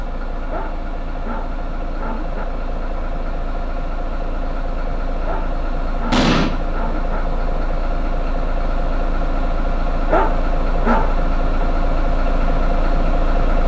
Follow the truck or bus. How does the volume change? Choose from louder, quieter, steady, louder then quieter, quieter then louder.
louder.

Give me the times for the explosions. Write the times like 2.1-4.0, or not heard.
6.1-6.5.